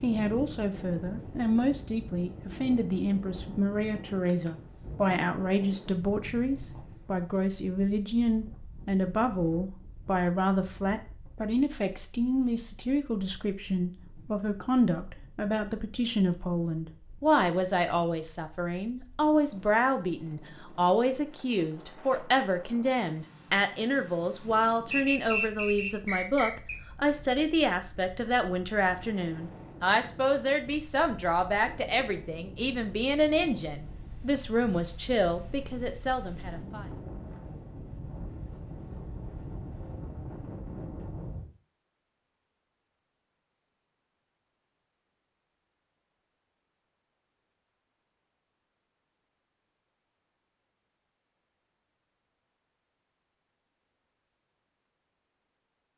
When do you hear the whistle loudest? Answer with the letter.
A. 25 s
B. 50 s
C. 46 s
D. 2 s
A.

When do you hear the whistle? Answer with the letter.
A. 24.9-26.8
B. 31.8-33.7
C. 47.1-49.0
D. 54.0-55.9
A.